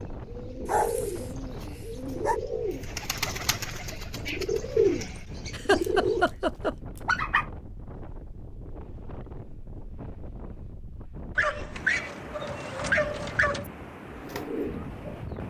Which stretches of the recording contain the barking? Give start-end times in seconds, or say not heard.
0.7-2.4, 6.7-7.5, 11.3-13.7.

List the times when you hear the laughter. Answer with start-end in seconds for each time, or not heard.
5.5-6.8.